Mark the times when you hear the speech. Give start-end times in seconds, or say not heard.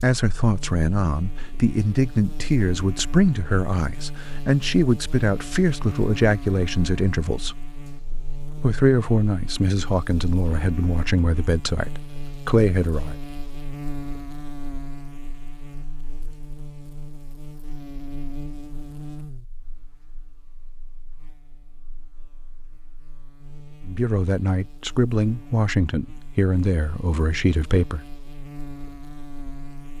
0.0-7.7, 8.6-13.2, 23.9-28.1.